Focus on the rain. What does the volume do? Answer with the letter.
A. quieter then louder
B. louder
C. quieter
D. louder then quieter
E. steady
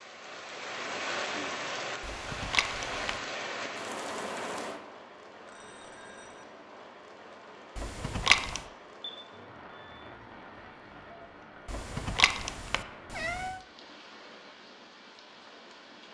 C.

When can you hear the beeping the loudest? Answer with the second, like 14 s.
9 s.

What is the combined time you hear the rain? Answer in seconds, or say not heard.
16 s.